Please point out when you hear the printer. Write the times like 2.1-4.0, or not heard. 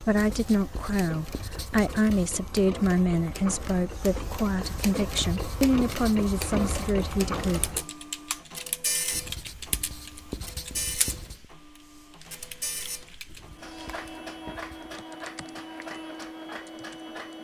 0.0-17.3.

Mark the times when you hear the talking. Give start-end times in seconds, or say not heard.
0.0-7.7.